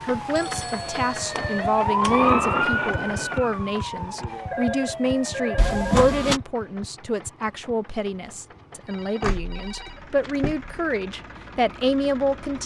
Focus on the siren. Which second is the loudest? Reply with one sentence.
The loudest moment of the siren is at 2 seconds.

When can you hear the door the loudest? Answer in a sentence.
The volume of the door peaks at 6 seconds.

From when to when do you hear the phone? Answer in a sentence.
The phone can be heard from 0.3 to 1.6 s, from 4.5 to 6.1 s and from 8.8 to 10.5 s.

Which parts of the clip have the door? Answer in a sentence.
You can hear the door from 1.3 to 2.3 s, from 5.5 to 6.4 s and from 9.2 to 10.8 s.